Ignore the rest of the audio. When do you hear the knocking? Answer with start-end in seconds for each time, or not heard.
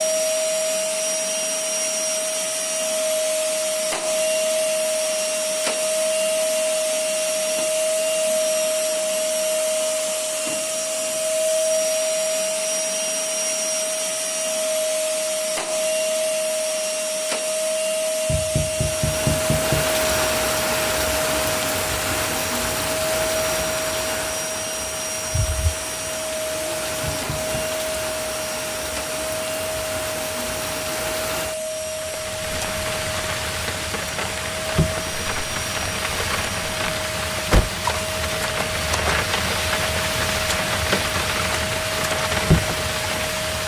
18.2-19.9, 27.0-27.6.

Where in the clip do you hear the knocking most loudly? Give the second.
19 s.